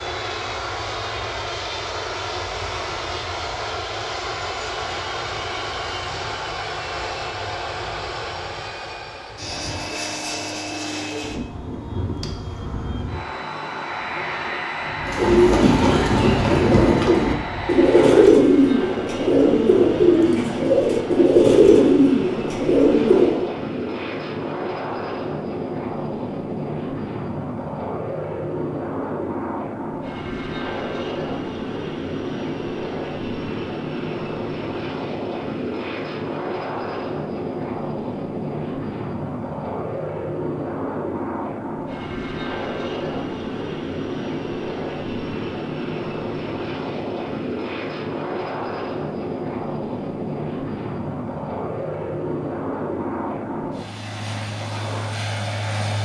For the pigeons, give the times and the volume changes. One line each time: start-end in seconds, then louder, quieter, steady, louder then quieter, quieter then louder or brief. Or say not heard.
15.1-23.5 steady.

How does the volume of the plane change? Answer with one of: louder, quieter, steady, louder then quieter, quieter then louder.
steady.